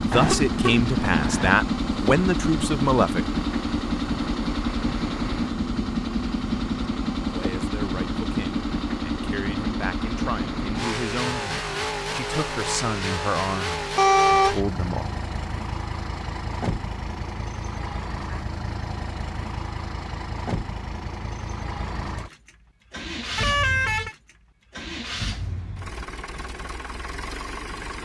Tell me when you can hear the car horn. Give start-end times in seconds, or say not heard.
0.1-1.5, 13.9-14.6, 23.4-24.1.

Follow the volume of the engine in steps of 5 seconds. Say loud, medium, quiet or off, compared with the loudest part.
loud, loud, loud, medium, medium, medium.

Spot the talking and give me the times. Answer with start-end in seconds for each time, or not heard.
0.0-3.2, 7.3-15.1.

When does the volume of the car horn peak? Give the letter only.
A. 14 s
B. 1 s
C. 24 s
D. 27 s
A.